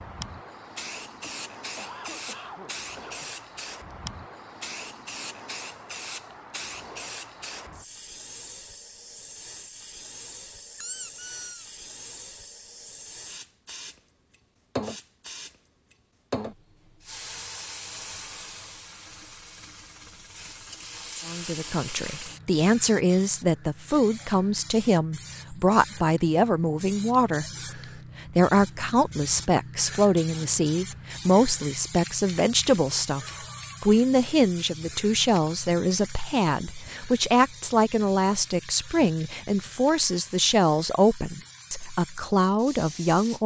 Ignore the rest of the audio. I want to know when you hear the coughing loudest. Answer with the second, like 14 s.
2 s.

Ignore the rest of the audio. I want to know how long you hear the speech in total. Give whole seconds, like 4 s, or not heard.
21 s.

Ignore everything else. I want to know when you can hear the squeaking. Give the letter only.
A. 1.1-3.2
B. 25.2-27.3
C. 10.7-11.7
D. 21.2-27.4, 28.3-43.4
C.